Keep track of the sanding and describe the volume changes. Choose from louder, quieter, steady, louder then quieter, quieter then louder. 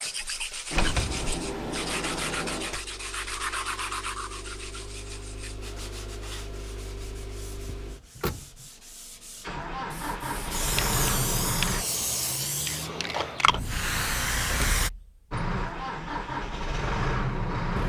quieter.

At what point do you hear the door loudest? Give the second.
1 s.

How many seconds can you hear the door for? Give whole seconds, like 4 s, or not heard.
4 s.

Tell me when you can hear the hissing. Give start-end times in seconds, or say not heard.
10.5-14.9.